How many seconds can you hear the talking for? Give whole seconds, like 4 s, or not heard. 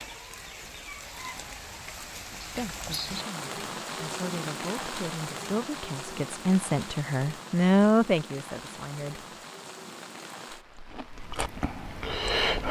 7 s.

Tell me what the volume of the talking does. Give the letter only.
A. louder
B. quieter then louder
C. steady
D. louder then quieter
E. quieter
A.